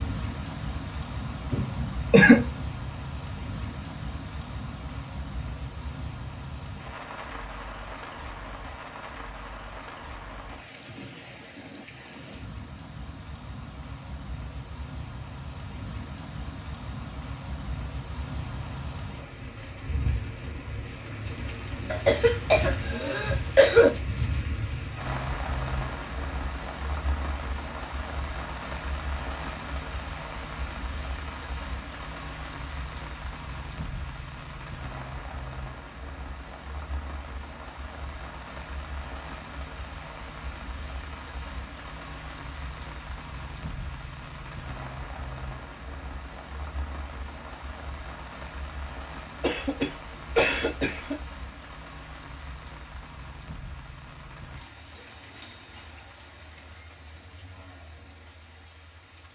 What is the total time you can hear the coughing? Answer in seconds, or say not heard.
5 s.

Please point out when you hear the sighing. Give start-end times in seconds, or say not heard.
not heard.